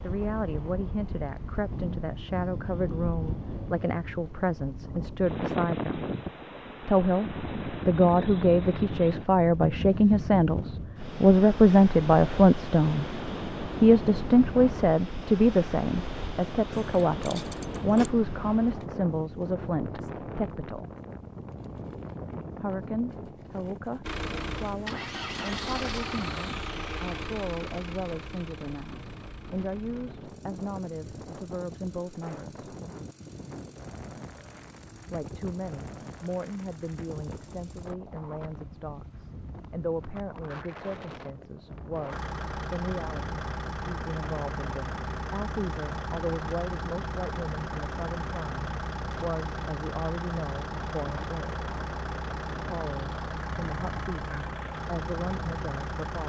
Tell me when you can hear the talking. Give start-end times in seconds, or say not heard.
0.0-6.0, 6.8-20.9, 22.6-32.6, 35.1-51.5, 52.6-56.2.